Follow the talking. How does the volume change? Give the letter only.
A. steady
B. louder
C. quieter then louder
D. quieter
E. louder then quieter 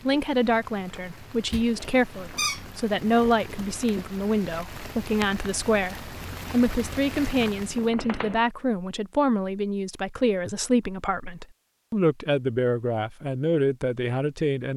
A.